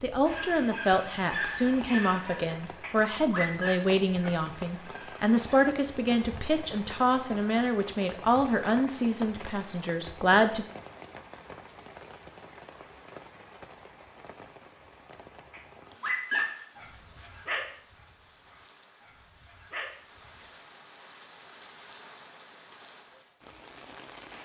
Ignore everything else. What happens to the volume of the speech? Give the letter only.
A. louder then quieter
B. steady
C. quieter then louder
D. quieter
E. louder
B.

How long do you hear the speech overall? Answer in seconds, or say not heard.
11 s.